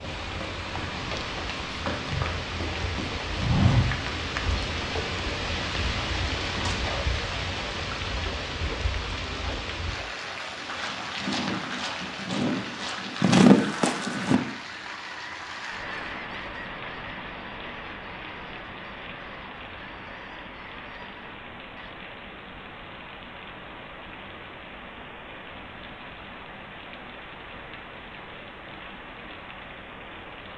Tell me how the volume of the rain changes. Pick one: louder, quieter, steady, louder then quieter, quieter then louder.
quieter.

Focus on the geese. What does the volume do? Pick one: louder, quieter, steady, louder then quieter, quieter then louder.
quieter.